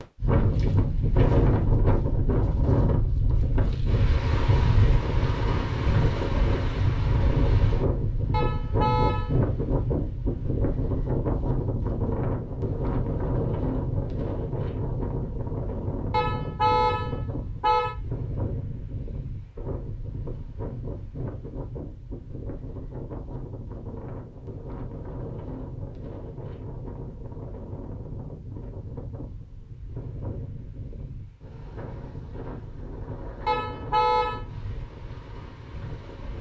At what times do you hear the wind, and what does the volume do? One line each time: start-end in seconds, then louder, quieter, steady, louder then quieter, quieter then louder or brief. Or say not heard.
0.0-36.3 quieter.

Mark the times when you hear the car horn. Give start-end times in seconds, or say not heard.
8.3-9.4, 16.1-17.9, 33.5-34.4.